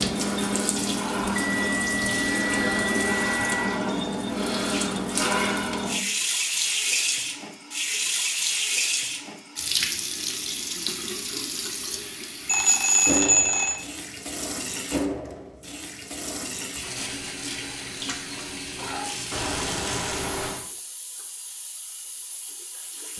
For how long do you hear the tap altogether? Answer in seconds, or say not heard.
23 s.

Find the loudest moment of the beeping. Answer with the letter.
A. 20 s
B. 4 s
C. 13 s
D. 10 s
C.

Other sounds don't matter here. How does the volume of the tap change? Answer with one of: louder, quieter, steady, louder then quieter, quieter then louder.
quieter.